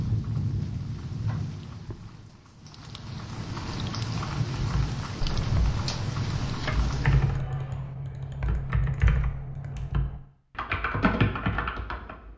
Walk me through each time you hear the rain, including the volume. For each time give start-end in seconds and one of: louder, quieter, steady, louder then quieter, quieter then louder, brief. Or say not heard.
0.0-7.4 quieter then louder.